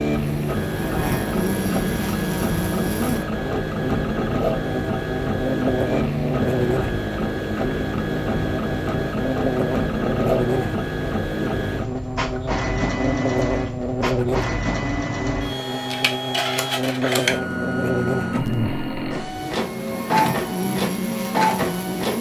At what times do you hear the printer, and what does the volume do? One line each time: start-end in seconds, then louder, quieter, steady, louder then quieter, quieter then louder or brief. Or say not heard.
0.0-22.1 steady.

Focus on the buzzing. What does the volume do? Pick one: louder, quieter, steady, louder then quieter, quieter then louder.
steady.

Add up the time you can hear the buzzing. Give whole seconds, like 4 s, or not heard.
22 s.